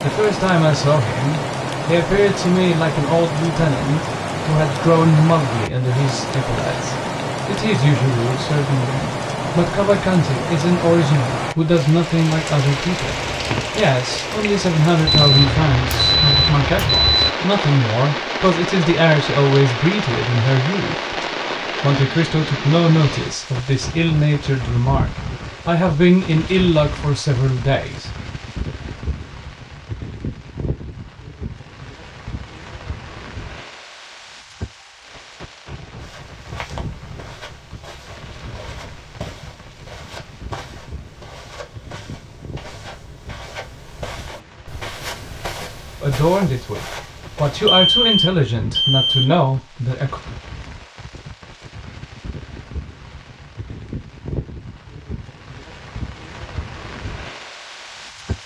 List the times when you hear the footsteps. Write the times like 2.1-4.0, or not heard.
36.0-47.9.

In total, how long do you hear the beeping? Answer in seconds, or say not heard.
4 s.